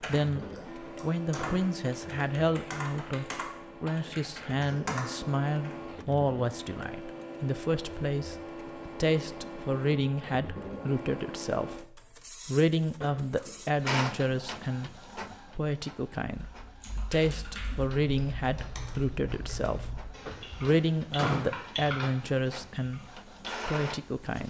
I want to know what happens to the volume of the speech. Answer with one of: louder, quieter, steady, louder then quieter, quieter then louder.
steady.